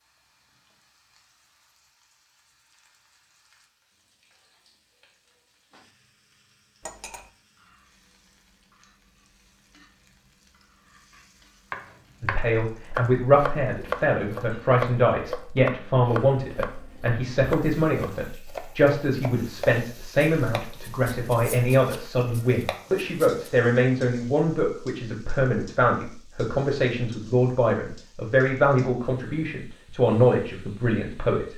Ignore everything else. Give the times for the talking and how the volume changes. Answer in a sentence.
You can hear the talking from 12.2 to 31.5 s, at a steady volume.